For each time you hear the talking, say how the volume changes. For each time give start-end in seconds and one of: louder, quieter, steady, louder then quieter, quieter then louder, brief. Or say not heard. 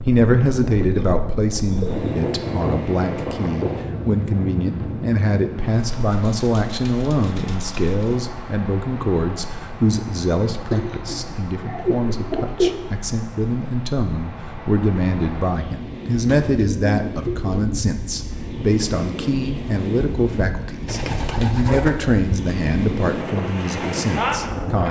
0.0-24.8 steady.